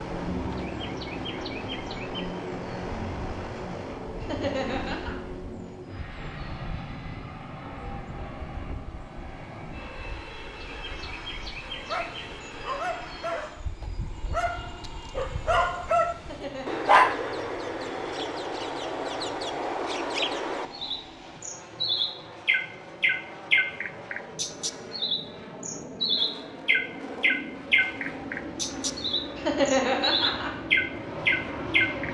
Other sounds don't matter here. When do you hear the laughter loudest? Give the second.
30 s.